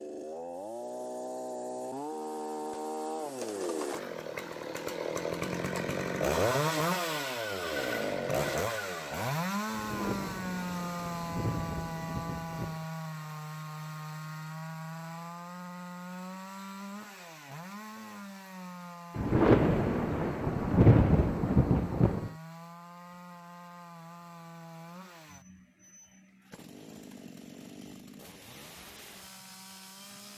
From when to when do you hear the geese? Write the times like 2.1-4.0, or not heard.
not heard.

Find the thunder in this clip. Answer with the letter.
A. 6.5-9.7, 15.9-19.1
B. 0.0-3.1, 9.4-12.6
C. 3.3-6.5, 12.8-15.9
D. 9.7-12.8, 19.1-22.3
D.